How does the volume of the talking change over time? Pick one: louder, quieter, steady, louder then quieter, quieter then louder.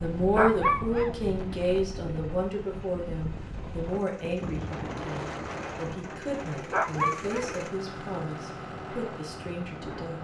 quieter.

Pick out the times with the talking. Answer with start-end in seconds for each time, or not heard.
0.0-10.2.